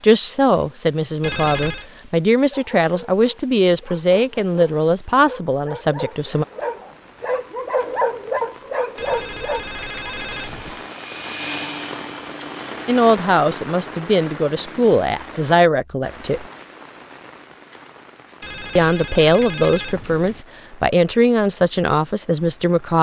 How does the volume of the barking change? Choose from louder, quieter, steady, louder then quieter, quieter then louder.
louder.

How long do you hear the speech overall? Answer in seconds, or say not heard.
14 s.